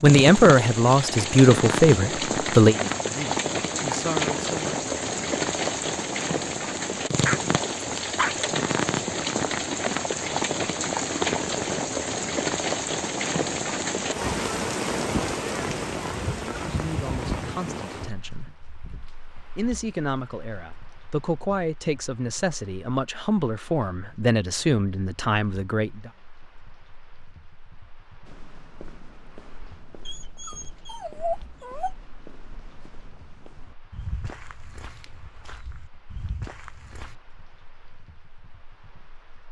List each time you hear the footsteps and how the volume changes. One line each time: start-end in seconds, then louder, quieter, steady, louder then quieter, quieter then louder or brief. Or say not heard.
28.2-37.1 louder.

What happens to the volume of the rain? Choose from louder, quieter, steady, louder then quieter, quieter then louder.
quieter.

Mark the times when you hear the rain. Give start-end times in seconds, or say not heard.
0.0-39.4.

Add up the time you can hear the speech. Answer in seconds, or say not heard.
13 s.